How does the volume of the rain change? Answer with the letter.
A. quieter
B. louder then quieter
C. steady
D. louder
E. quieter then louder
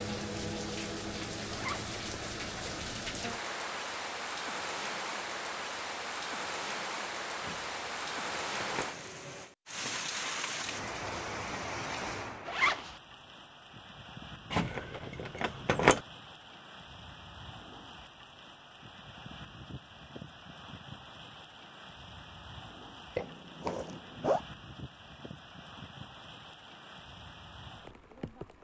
A.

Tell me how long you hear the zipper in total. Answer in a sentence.
You can hear the zipper for 2 seconds altogether.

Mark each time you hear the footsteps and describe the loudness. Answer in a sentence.
You can't hear the footsteps here.